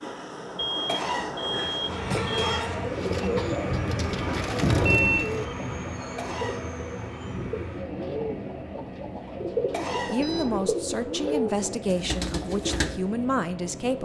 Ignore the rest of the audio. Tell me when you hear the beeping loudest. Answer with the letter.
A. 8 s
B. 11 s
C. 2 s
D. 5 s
D.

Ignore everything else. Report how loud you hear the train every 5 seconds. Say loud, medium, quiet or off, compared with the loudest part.
loud, medium, medium.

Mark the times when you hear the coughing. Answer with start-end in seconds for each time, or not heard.
0.8-2.8, 6.2-6.8, 9.7-10.3.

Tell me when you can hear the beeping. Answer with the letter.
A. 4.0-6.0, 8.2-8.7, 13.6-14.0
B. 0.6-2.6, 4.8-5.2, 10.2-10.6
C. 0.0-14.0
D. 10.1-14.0
B.